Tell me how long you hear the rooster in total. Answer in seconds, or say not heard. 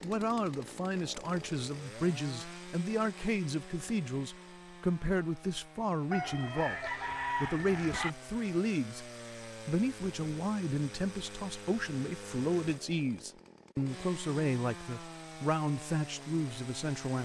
2 s.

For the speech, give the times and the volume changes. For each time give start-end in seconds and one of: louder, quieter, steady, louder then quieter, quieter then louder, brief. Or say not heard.
0.0-17.2 steady.